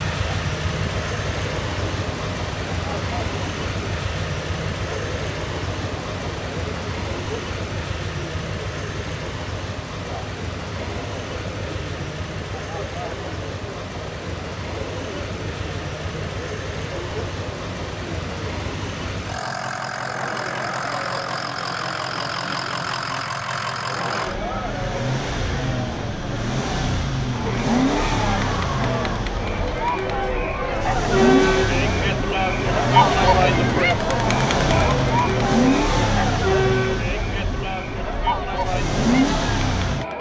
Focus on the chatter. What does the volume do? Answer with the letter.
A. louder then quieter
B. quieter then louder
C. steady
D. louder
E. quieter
D.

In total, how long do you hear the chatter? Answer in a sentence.
You can hear the chatter for 40 seconds altogether.